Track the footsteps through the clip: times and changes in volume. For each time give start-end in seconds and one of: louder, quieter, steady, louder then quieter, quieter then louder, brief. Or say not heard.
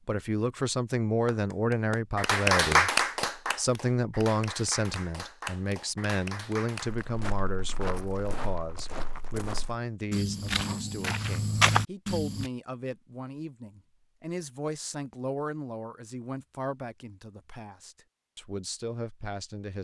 6.8-12.5 louder.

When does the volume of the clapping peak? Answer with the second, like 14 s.
3 s.